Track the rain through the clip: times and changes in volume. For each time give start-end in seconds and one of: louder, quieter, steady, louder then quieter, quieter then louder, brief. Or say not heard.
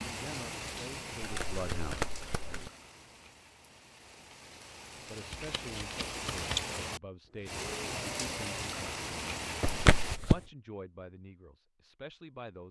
0.0-10.2 quieter then louder.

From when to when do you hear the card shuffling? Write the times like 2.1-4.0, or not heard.
1.2-2.7, 5.3-6.7, 9.6-10.4.